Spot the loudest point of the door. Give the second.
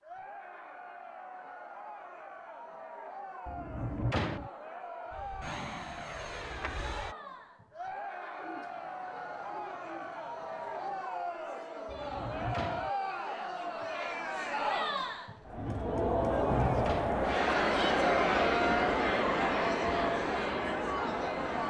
4 s.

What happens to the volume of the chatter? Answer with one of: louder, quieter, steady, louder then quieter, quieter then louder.
louder.